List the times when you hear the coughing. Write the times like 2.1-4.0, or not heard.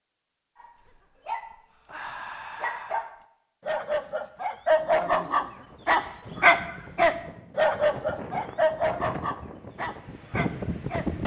not heard.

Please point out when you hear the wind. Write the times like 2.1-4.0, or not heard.
5.5-11.2.